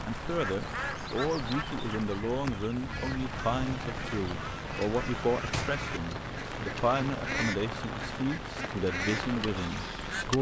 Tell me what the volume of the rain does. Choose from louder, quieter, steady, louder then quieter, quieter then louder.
steady.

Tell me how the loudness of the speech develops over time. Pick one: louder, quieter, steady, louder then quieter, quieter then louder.
steady.